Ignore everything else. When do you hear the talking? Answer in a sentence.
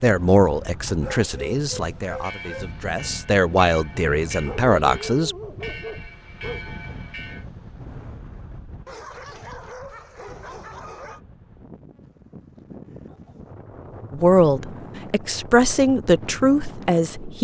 The talking can be heard from 0.0 to 5.3 s and from 14.1 to 17.3 s.